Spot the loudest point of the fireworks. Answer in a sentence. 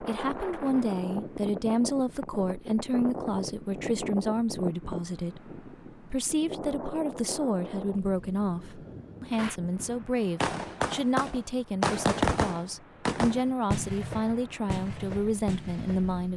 The loudest moment of the fireworks is at 12 seconds.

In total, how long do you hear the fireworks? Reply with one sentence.
The fireworks can be heard for 7 seconds in total.